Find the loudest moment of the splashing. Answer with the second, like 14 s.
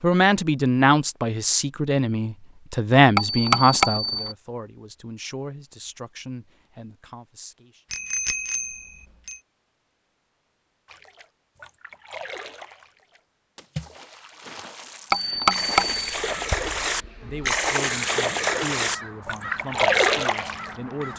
20 s.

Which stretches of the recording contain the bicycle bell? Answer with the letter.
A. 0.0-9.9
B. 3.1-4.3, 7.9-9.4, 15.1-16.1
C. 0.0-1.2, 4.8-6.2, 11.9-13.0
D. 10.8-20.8
B.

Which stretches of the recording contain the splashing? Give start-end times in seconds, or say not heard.
10.8-20.8.